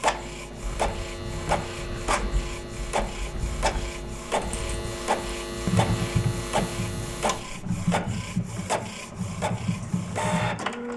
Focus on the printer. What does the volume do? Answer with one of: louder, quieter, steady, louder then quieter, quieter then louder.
steady.